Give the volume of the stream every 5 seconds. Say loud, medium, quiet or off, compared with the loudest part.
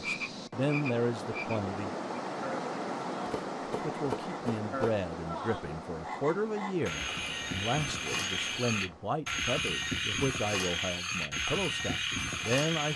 loud, medium, off.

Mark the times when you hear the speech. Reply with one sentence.
You can hear the speech from 0.0 to 1.9 s and from 3.8 to 12.9 s.